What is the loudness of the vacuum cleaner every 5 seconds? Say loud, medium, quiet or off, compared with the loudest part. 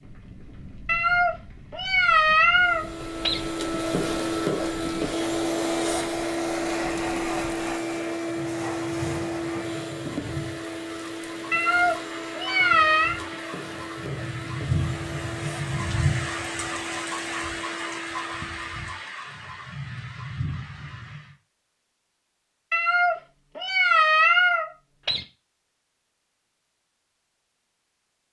loud, loud, medium, medium, off, off.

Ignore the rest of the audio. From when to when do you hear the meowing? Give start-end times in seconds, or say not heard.
0.8-3.4, 11.5-13.2, 22.7-25.2.